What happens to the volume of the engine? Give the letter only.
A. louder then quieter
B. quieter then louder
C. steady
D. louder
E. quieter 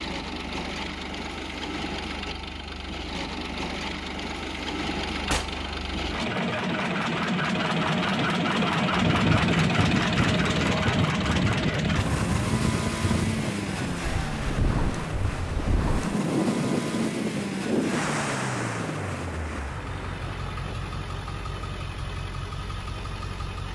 A.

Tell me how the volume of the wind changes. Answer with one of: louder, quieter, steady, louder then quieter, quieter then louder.
quieter.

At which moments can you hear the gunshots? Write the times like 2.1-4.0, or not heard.
5.2-5.8.